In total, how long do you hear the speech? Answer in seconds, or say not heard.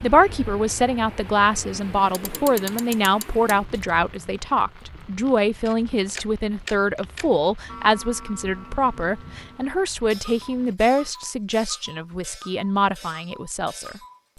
14 s.